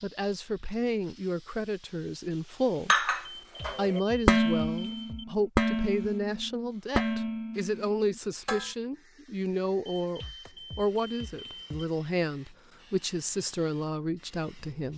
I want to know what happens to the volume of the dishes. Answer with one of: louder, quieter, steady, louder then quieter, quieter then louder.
louder then quieter.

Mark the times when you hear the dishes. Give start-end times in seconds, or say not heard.
2.9-8.7.